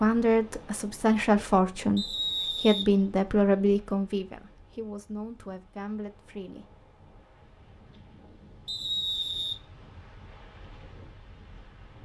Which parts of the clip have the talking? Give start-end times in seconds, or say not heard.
0.0-6.8.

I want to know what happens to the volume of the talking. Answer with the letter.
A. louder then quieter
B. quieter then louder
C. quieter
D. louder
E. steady
C.